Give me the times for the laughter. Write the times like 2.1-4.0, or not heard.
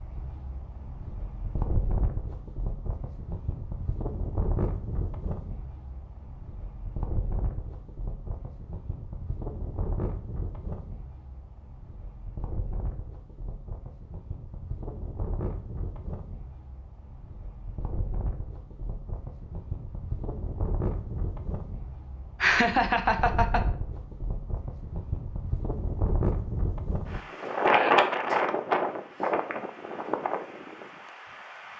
22.4-23.6.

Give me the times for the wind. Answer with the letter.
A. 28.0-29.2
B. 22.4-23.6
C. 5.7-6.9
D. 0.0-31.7
D.